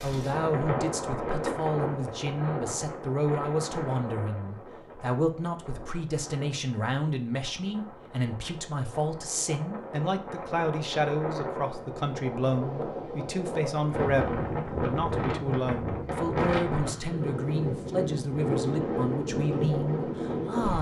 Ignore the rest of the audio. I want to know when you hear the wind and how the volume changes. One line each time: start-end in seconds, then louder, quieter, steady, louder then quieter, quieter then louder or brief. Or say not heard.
0.0-20.7 quieter then louder.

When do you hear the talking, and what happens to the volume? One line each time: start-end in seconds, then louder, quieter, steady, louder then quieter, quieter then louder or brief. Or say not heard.
0.0-20.7 steady.